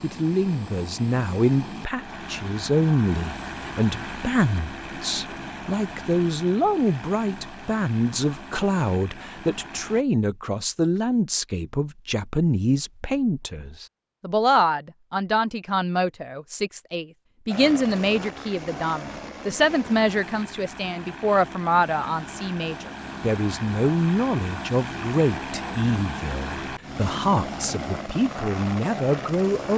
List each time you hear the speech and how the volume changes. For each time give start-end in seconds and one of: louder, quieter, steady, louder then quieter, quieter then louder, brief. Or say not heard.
0.0-29.7 steady.